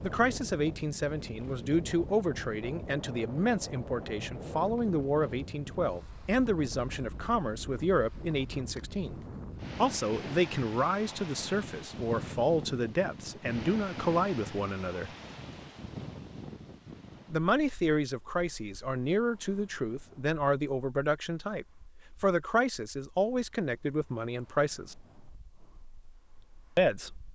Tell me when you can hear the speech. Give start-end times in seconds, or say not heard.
0.0-9.2, 9.8-15.1, 17.3-24.9, 26.8-27.2.